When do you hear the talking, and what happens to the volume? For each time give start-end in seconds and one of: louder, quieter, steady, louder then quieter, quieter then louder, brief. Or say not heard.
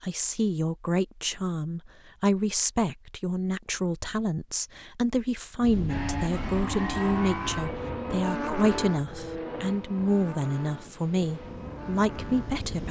0.0-12.8 steady.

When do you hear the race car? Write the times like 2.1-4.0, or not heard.
5.8-12.7.